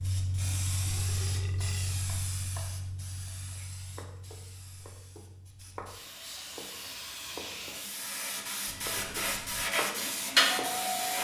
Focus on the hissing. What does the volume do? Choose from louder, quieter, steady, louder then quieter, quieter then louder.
quieter then louder.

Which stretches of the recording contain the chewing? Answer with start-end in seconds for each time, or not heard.
not heard.